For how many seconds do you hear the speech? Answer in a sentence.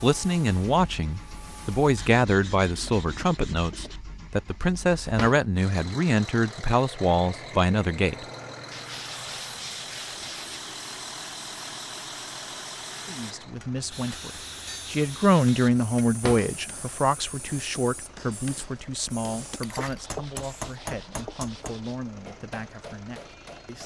The speech can be heard for 19 seconds in total.